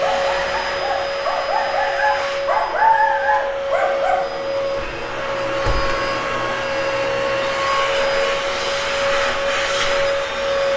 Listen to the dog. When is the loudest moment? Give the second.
3 s.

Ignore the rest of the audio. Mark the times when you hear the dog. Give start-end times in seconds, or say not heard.
0.0-4.2.